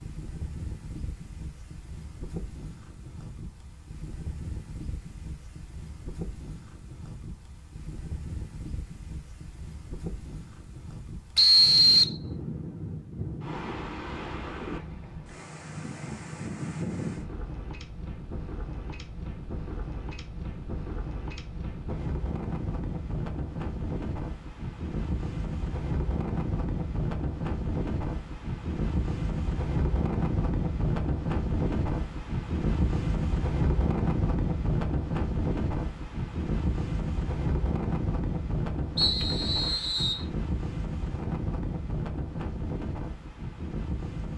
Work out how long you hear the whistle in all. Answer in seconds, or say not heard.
2 s.